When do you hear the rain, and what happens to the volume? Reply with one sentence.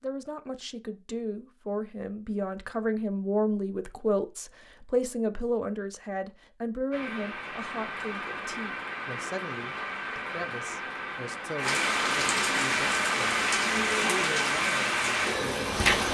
The rain can be heard from 6.9 to 16.1 s, getting louder.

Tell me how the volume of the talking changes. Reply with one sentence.
The volume of the talking goes down.